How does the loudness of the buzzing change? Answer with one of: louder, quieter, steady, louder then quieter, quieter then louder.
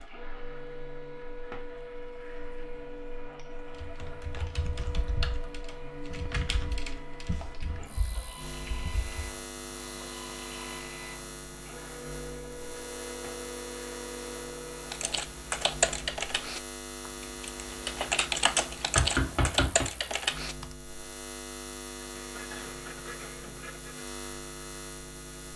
louder.